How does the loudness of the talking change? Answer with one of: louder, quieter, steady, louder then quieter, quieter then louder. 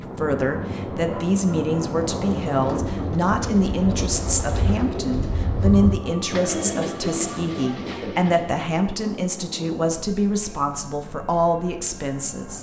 steady.